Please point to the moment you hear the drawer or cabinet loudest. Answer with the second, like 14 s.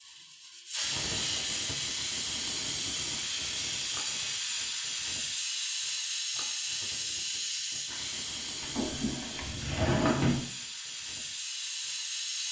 10 s.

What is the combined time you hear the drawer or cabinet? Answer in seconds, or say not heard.
2 s.